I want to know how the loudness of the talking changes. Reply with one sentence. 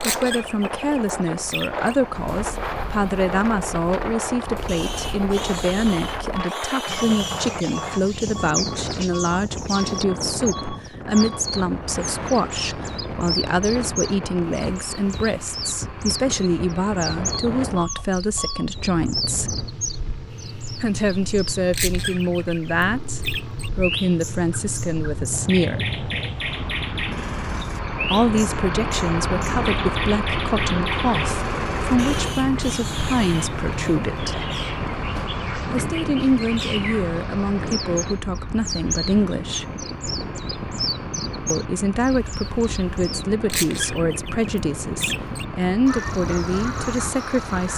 The volume of the talking stays about the same.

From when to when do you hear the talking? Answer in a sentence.
You can hear the talking from 0.0 to 19.6 s, from 20.8 to 25.9 s, from 28.1 to 34.5 s, from 35.6 to 39.6 s and from 41.5 to 47.7 s.